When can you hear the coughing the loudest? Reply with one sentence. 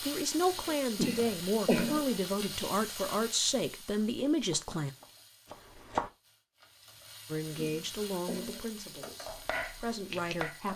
The volume of the coughing peaks at 2 seconds.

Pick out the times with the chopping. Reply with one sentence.
The chopping can be heard from 4.5 to 6.1 s and from 9.2 to 10.7 s.